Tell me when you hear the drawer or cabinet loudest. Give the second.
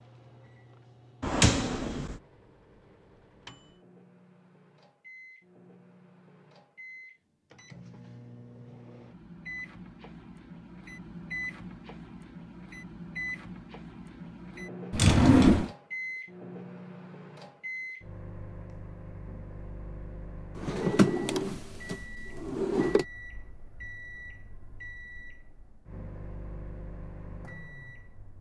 15 s.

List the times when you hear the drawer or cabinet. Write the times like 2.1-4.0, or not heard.
1.2-2.1, 14.9-15.7, 20.6-23.1.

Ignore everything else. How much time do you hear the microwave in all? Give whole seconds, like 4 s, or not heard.
28 s.